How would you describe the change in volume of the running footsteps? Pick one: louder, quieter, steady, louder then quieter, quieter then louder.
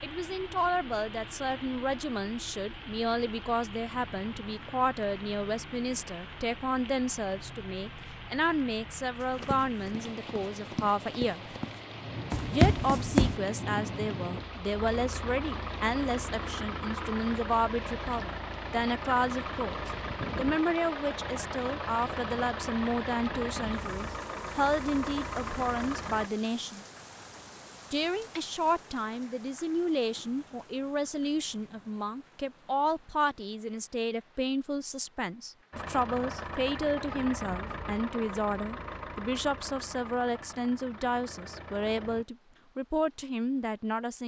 louder.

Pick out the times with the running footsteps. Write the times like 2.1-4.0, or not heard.
9.2-13.3.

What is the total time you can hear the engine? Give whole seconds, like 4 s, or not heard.
33 s.